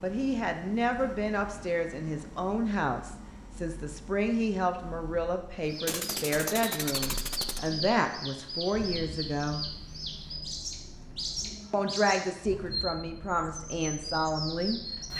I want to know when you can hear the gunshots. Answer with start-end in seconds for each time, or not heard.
5.8-7.7.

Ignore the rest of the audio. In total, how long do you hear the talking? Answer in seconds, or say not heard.
13 s.